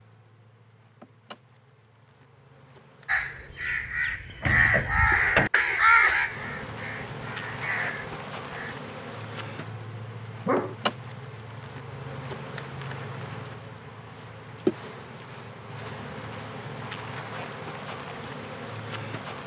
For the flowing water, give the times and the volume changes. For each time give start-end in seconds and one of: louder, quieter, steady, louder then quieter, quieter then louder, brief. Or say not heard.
not heard.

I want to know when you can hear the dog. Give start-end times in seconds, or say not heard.
10.4-11.2.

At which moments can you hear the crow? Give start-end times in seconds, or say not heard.
3.0-8.8.